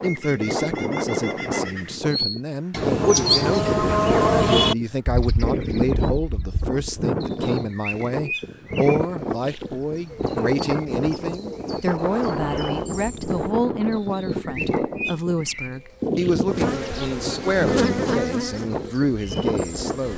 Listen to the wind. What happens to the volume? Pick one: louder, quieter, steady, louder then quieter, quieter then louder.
steady.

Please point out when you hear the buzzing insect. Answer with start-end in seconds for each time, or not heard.
16.5-20.1.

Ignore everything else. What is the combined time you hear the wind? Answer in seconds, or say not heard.
20 s.